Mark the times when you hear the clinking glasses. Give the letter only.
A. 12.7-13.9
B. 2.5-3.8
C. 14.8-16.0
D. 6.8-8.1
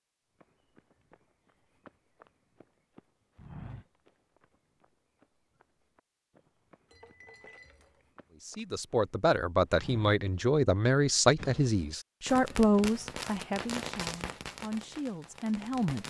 D.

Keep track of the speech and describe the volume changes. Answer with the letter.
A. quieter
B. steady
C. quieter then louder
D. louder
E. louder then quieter
A.